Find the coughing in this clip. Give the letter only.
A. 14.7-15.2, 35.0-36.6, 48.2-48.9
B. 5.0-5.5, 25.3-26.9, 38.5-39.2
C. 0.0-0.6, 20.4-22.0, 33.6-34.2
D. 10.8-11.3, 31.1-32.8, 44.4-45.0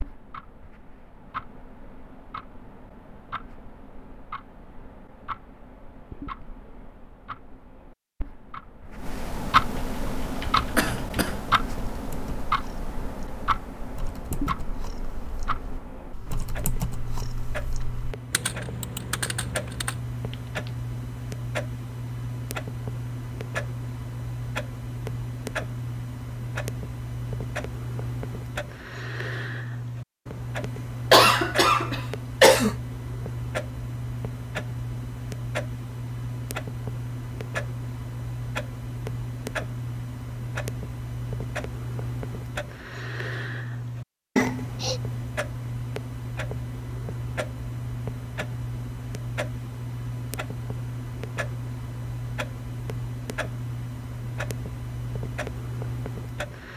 D.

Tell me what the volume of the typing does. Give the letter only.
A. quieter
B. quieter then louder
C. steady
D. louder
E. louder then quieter
B.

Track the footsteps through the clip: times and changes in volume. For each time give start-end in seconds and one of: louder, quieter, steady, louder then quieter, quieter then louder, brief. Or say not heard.
not heard.